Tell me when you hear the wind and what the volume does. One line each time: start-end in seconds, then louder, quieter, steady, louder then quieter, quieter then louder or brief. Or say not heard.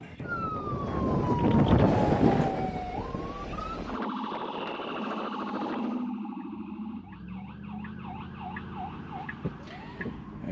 0.0-6.1 louder then quieter.